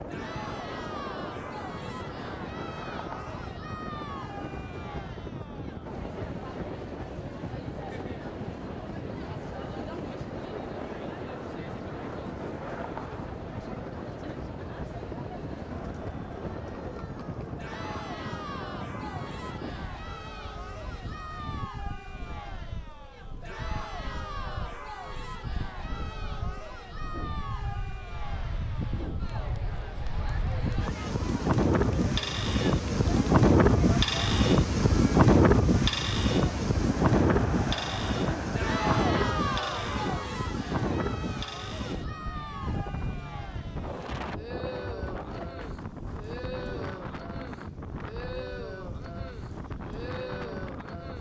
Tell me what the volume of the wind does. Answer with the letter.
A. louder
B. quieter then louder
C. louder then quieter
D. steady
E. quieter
C.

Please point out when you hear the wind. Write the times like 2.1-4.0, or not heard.
0.0-51.1.